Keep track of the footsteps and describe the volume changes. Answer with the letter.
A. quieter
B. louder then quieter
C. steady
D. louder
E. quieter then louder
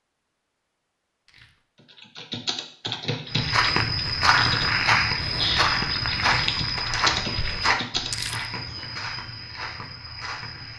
A.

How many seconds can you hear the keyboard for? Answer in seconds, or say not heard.
7 s.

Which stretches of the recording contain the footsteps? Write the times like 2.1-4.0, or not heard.
3.2-10.7.